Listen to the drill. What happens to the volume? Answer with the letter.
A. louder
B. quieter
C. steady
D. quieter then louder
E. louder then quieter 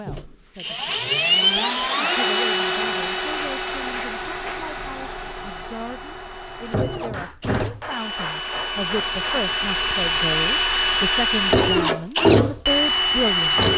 D.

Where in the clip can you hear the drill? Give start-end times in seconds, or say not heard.
0.1-13.7.